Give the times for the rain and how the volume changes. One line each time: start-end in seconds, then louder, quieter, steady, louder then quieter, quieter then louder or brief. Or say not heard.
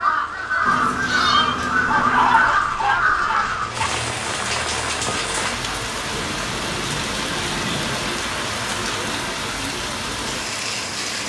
0.0-11.2 louder.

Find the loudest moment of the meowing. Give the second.
1 s.